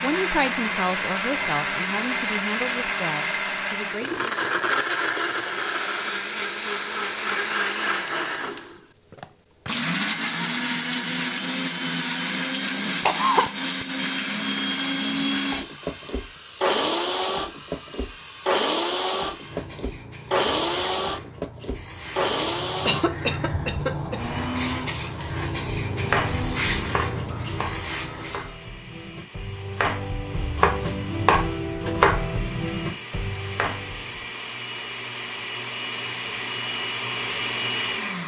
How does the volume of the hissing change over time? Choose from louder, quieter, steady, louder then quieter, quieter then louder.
louder.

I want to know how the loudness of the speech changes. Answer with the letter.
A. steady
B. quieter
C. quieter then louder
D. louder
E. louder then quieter
B.